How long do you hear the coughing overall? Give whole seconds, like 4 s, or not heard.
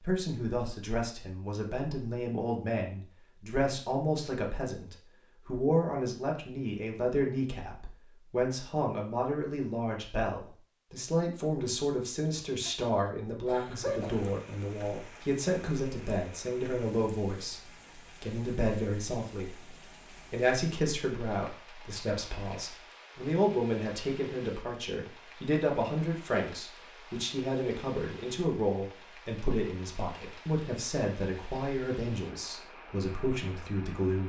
2 s.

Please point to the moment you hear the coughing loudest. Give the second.
14 s.